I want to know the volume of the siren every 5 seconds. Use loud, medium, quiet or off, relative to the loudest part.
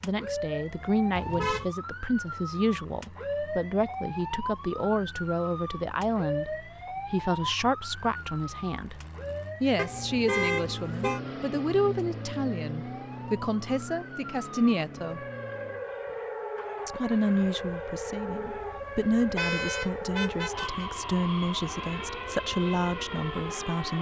loud, loud, medium, loud, loud.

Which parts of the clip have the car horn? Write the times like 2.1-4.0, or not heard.
1.1-1.8, 9.8-11.2, 19.4-20.9.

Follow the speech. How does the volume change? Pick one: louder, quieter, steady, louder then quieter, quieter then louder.
steady.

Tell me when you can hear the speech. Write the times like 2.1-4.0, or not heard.
0.0-9.0, 9.6-15.2, 16.9-23.9.